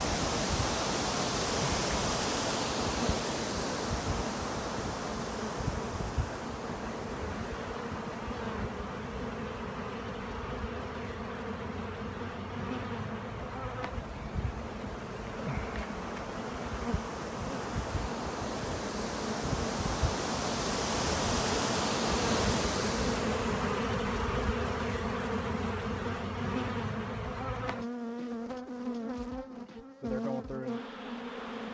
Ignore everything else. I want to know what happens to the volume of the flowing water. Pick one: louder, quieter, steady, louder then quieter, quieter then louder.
quieter then louder.